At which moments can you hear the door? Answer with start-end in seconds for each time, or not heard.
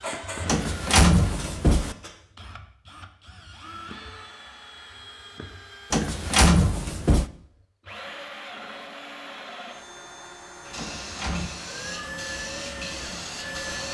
0.5-1.9, 5.9-7.2, 10.8-11.5.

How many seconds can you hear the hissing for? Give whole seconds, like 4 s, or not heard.
5 s.